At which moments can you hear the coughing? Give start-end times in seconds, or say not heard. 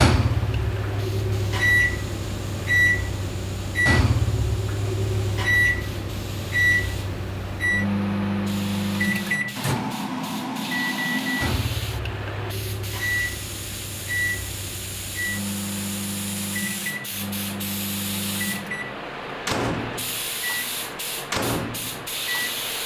not heard.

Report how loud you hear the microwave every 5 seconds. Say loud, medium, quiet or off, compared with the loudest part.
loud, loud, medium, medium, medium.